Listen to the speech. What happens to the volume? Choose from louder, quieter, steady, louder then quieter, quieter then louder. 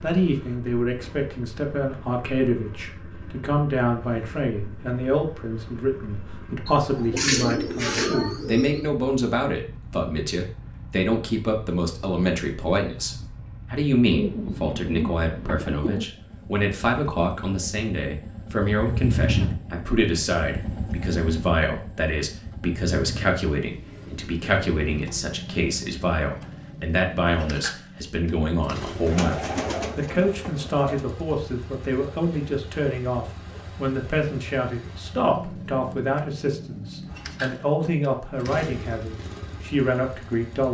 steady.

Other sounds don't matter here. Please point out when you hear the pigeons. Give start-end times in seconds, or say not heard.
6.7-8.8, 14.0-16.1, 29.1-31.1.